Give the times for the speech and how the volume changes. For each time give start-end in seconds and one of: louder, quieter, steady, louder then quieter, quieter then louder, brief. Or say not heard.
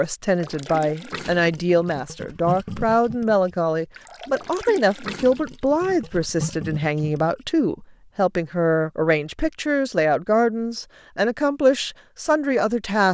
0.0-13.0 steady.